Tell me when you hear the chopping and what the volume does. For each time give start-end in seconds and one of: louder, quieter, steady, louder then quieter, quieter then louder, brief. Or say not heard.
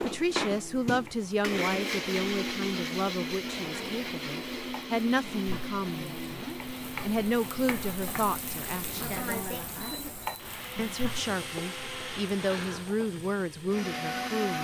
not heard.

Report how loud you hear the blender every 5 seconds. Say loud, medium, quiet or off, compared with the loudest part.
loud, medium, loud.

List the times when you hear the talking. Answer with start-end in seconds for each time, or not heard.
0.0-9.2, 10.8-14.6.